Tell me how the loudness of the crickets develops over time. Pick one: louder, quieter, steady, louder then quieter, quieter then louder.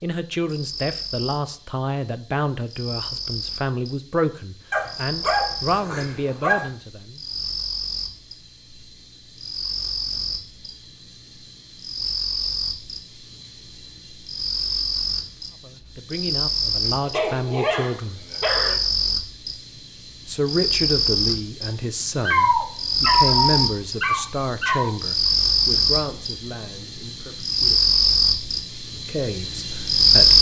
louder.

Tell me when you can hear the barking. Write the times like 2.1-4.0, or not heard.
4.7-6.7, 17.1-18.8, 22.2-24.9.